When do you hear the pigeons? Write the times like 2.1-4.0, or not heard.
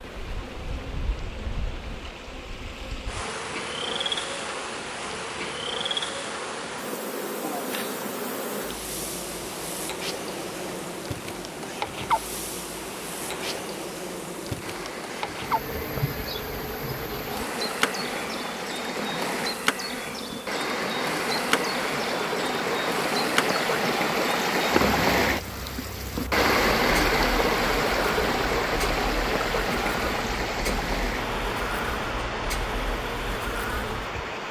not heard.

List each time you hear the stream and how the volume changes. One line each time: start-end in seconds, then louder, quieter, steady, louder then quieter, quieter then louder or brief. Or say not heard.
0.0-34.4 louder.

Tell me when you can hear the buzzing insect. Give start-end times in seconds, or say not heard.
0.0-34.4.